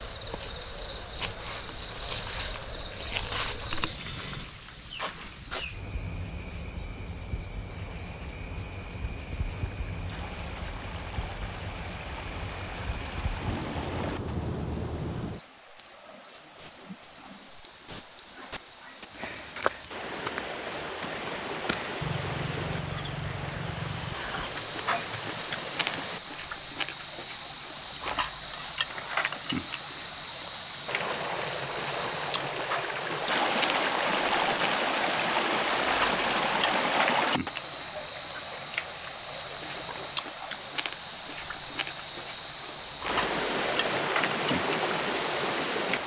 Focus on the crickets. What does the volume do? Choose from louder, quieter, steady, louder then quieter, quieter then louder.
steady.